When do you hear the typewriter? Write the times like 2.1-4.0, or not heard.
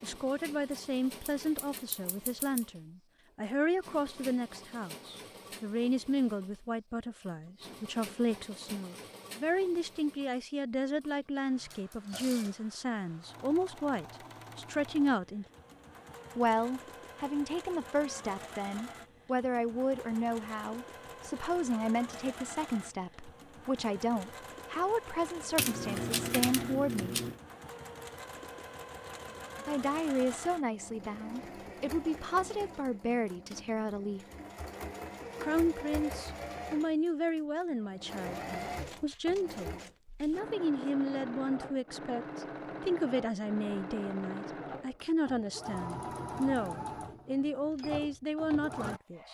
25.6-27.4.